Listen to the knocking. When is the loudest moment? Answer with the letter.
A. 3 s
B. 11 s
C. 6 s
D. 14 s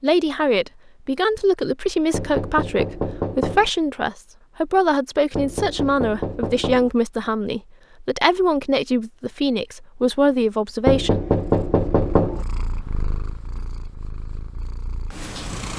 B.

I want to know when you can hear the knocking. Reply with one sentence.
The knocking can be heard from 2.1 to 3.7 s, from 5.3 to 6.9 s and from 10.8 to 12.4 s.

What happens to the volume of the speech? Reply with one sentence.
The loudness of the speech stays about the same.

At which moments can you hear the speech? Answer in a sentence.
The speech can be heard from 0.0 to 11.2 s.